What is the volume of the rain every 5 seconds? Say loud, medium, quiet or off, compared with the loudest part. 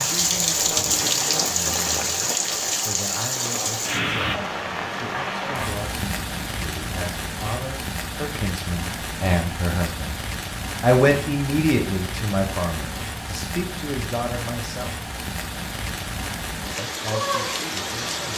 loud, medium, medium, medium.